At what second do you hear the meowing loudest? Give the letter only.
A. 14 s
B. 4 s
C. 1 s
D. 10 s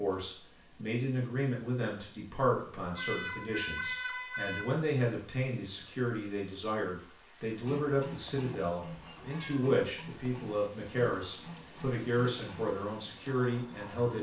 B.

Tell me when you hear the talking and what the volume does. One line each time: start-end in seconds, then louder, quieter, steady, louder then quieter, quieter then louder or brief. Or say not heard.
0.0-14.1 steady.